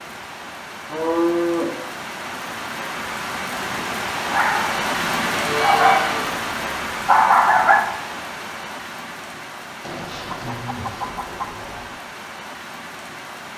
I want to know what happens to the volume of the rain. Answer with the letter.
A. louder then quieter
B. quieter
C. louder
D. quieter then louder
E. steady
A.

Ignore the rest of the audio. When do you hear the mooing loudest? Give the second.
1 s.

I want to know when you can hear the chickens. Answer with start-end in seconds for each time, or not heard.
10.2-11.8.